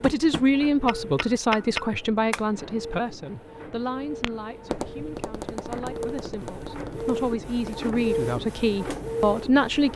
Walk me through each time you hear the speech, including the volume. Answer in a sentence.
The speech can be heard from 0.0 to 9.9 s, getting quieter then louder.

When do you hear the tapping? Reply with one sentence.
You can hear the tapping from 0.0 to 2.5 s and from 4.2 to 7.9 s.